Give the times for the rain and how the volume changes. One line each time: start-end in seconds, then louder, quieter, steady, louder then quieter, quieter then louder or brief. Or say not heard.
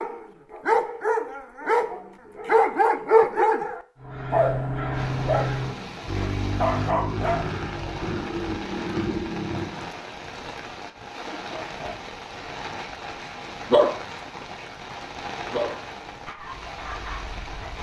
4.9-17.7 steady.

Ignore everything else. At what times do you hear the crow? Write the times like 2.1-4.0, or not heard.
4.0-9.9.